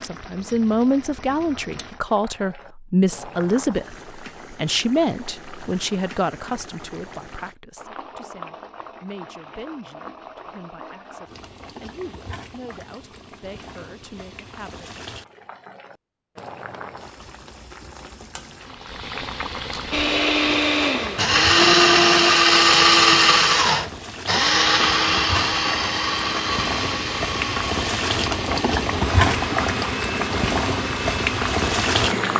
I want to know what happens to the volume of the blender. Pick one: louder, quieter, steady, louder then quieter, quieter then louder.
quieter.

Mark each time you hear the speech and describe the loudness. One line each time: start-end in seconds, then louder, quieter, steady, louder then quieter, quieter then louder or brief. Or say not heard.
0.0-15.1 quieter.